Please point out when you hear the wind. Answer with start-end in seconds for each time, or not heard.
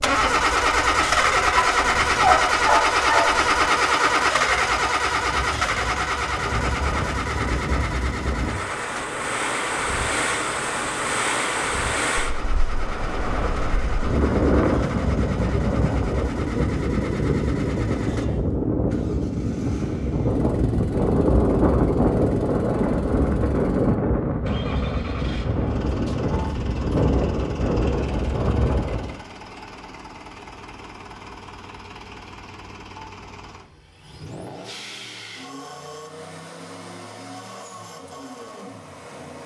0.0-29.2.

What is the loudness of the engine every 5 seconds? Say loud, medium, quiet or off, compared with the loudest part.
loud, medium, quiet, quiet, quiet, quiet, quiet, quiet.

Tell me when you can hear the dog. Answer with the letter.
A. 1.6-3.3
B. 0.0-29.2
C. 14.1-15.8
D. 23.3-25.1
A.